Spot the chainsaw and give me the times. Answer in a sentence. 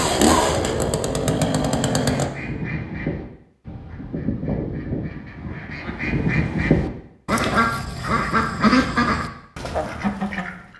The chainsaw can be heard from 0.0 to 2.3 s.